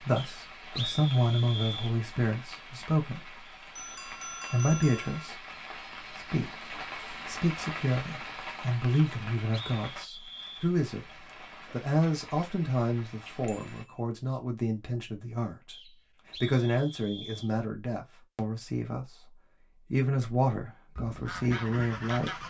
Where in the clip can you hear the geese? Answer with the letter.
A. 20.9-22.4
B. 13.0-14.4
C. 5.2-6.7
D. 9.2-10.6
A.